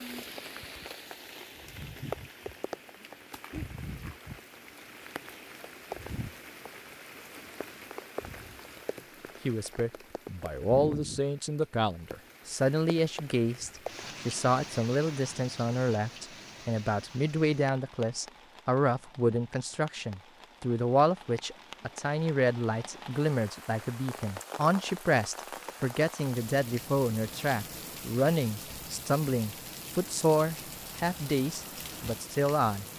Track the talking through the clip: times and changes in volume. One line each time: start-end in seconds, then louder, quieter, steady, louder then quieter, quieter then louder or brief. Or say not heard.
9.4-32.9 steady.